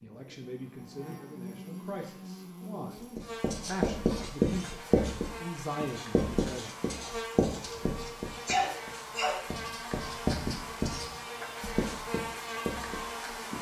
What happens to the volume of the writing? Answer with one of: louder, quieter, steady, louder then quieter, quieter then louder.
quieter.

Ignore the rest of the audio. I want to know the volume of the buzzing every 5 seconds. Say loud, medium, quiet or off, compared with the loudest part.
medium, loud, loud.